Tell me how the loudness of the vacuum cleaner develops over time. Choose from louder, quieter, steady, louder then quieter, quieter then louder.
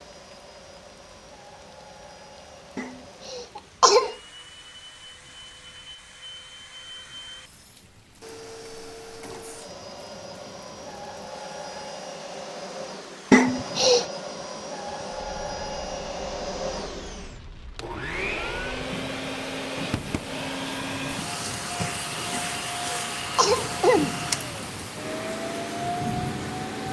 louder.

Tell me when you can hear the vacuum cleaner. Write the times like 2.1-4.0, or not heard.
0.0-26.8.